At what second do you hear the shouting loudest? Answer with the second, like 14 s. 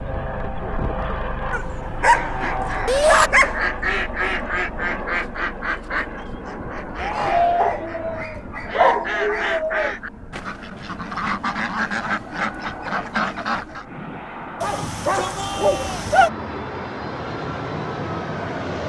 3 s.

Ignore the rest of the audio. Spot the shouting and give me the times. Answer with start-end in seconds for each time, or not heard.
2.9-3.3, 7.0-7.8, 14.8-16.1.